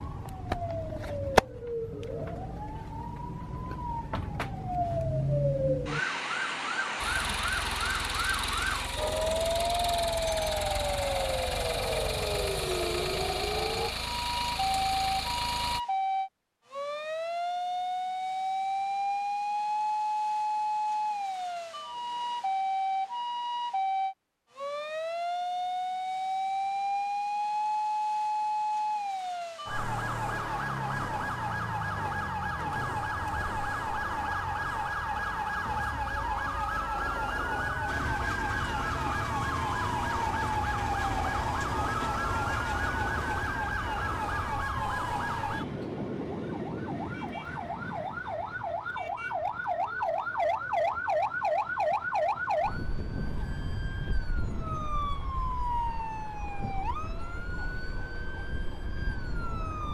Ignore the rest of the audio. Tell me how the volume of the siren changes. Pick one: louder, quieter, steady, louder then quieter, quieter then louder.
steady.